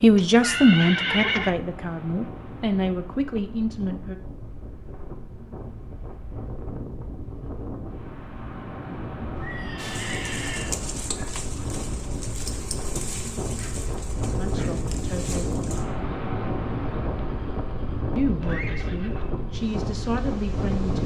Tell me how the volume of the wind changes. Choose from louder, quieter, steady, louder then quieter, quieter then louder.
louder.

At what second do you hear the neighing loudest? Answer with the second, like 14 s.
1 s.